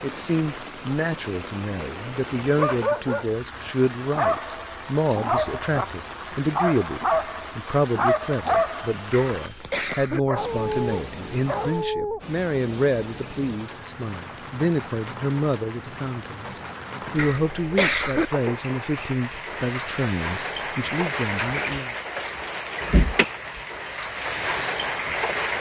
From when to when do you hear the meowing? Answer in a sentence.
The meowing can't be heard in this clip.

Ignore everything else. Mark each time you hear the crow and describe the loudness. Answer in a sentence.
You can't hear the crow here.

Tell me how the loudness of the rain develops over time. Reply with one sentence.
The volume of the rain goes up.